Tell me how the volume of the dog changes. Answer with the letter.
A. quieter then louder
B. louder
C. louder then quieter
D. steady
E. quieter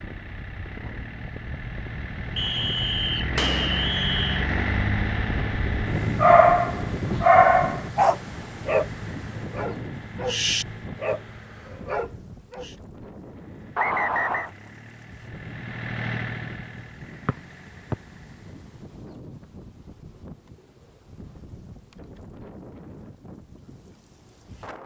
E.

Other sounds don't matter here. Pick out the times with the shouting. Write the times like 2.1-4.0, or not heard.
not heard.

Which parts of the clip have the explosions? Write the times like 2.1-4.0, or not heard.
3.4-4.0.